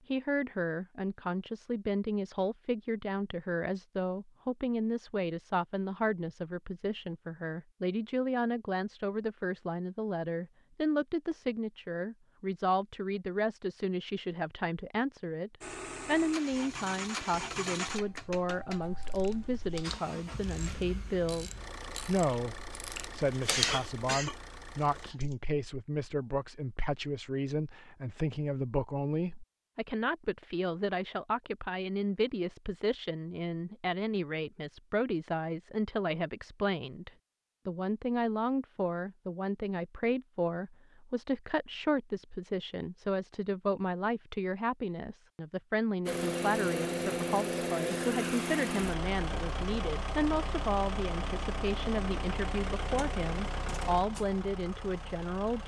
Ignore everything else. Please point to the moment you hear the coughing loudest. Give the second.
24 s.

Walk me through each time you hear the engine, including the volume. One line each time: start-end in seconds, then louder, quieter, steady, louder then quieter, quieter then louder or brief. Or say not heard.
15.6-25.1 quieter
46.0-55.6 quieter.